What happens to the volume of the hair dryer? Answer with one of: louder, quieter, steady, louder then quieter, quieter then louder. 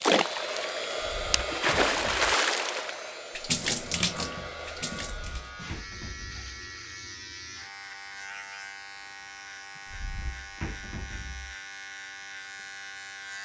quieter.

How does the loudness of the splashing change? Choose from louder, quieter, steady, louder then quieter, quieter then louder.
louder then quieter.